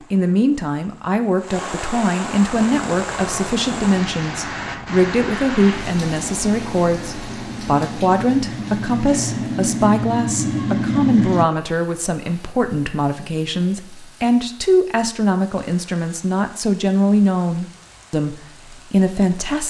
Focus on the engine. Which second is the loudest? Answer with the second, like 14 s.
11 s.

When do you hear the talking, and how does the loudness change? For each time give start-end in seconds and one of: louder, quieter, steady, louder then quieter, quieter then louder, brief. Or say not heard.
0.1-19.6 steady.